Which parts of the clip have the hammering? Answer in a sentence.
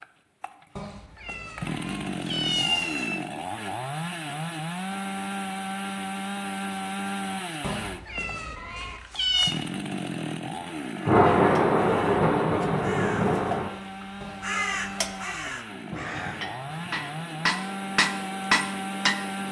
The hammering can be heard from 16.2 to 19.4 s.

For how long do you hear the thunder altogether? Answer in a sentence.
The thunder can be heard for 3 seconds in total.